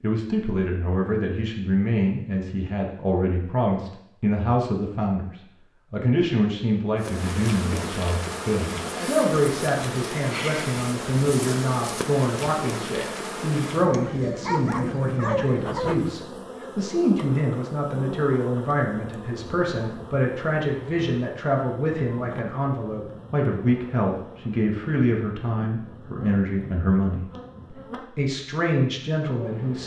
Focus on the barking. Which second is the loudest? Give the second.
15 s.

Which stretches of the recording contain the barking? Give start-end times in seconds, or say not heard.
13.9-15.9.